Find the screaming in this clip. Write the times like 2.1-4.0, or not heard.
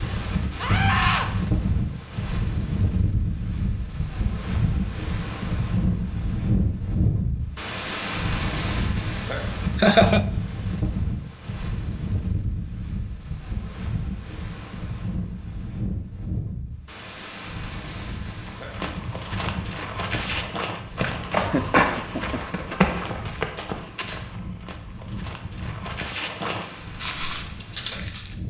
0.6-1.3.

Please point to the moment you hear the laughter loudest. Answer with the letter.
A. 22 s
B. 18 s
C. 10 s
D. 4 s
C.